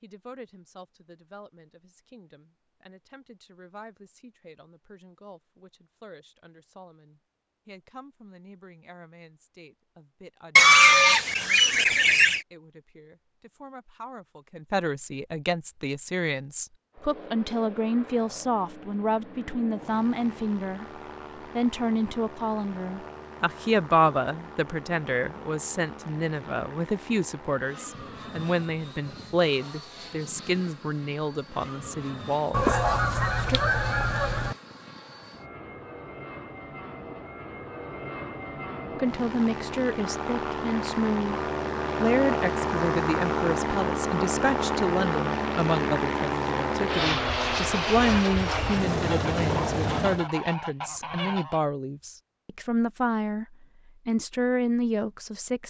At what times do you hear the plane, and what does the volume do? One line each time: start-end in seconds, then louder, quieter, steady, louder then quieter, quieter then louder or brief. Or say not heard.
16.9-50.3 louder.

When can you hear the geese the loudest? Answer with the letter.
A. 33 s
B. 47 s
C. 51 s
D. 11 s
D.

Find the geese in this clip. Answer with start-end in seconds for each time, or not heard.
10.6-12.4, 32.5-34.5, 49.0-51.6.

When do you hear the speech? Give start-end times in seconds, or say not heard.
0.0-20.9, 21.6-33.6, 39.0-41.4, 42.0-53.5, 54.0-55.6.